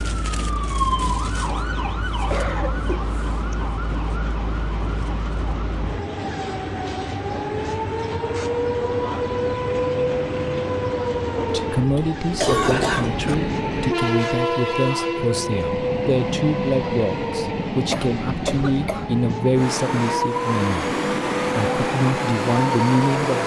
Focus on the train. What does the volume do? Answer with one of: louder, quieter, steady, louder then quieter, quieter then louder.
louder.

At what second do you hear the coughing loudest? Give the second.
13 s.